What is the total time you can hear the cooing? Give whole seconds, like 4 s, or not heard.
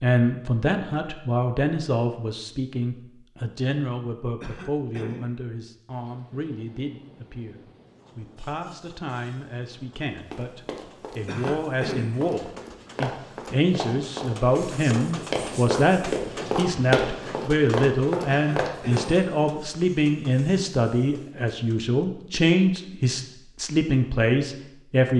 not heard.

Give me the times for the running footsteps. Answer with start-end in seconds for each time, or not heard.
10.3-19.1.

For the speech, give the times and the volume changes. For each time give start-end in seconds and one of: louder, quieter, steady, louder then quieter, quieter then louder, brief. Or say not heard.
0.0-25.1 quieter then louder.